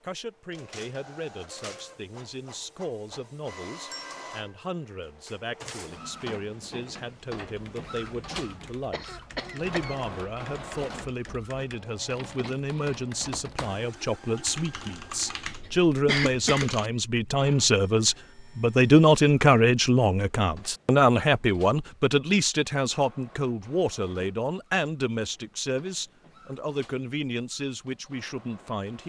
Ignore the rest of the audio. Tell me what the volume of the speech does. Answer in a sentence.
The volume of the speech goes up, then down.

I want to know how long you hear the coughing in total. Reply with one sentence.
The coughing can be heard for 2 seconds in total.